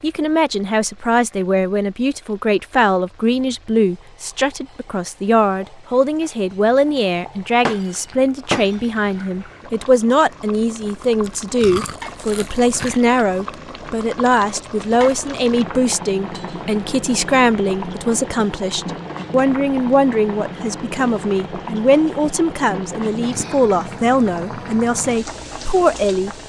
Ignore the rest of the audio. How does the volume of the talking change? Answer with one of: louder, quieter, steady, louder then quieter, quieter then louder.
steady.